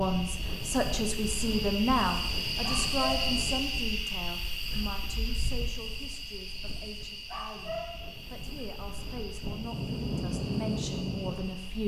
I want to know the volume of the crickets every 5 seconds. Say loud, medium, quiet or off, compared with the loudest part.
loud, medium, quiet.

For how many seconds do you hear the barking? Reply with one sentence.
The barking can be heard for 2 seconds in total.